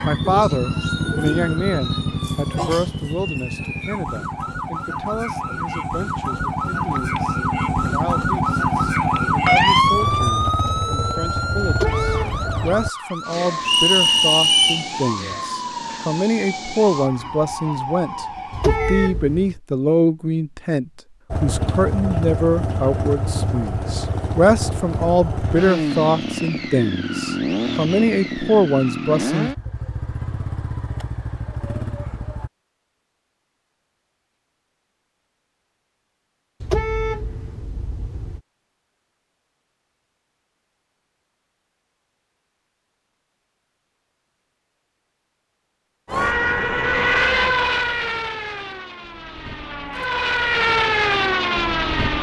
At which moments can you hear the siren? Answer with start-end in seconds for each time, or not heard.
0.0-19.1, 46.0-52.1.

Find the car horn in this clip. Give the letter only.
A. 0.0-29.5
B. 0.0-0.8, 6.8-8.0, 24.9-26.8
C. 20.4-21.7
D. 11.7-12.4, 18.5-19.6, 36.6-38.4
D.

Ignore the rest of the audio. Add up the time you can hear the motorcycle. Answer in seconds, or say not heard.
24 s.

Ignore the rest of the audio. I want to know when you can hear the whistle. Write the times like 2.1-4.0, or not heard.
13.6-14.8.